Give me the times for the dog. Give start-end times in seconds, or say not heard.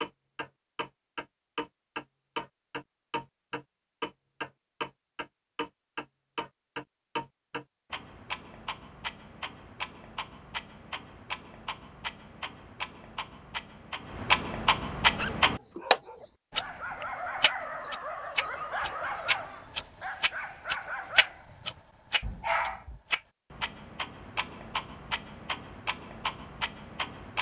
15.0-23.0.